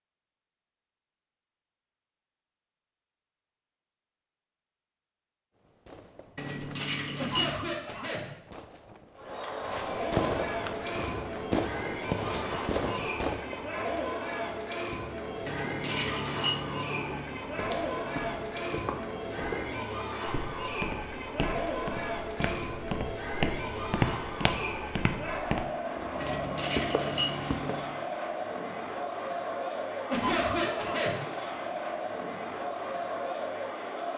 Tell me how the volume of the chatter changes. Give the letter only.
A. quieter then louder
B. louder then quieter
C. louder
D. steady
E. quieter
D.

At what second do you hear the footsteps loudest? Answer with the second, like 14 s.
24 s.